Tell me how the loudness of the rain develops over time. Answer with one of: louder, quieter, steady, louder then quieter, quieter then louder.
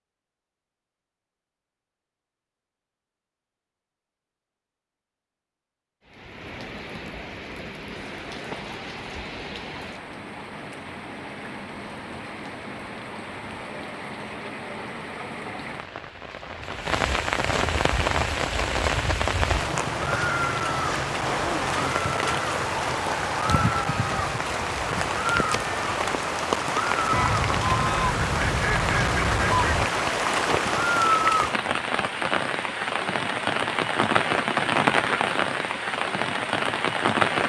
louder.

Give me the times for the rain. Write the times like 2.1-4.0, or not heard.
6.0-37.4.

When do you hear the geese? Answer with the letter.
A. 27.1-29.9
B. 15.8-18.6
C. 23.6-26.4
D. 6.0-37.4
A.